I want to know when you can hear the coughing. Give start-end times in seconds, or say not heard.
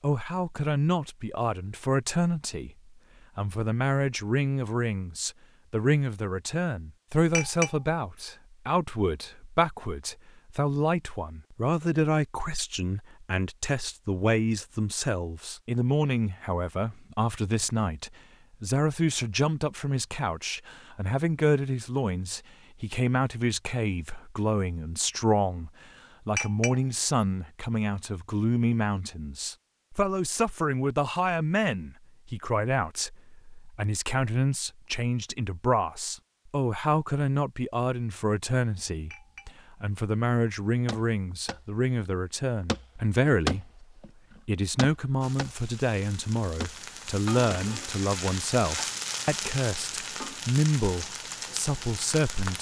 not heard.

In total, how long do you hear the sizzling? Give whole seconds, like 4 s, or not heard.
7 s.